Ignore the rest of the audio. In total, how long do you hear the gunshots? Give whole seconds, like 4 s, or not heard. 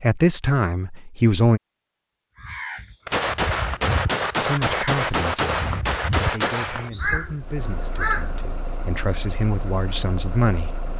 4 s.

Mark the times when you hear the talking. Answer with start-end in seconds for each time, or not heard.
0.0-1.6, 4.4-10.8.